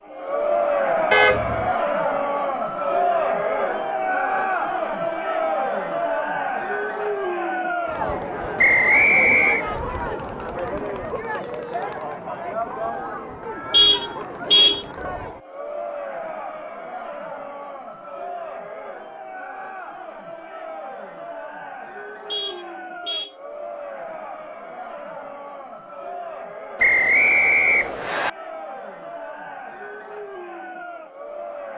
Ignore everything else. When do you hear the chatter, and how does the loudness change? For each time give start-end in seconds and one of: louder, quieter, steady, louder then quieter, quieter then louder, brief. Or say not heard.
0.1-31.7 quieter.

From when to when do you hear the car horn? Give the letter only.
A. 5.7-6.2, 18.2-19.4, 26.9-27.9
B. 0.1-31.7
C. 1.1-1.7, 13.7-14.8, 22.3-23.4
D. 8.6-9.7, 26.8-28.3
C.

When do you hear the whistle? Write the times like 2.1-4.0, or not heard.
8.6-9.7, 26.8-28.3.